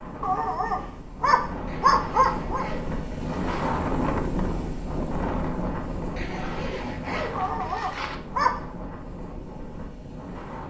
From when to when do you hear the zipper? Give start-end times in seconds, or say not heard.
1.6-3.7, 6.2-8.2.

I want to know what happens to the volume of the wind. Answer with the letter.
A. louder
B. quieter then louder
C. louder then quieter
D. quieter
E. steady
C.